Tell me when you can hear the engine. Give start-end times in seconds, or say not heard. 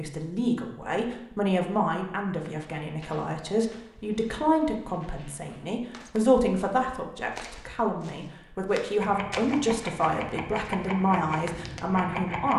8.9-12.5.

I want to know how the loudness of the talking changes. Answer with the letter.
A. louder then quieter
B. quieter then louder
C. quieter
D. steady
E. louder
D.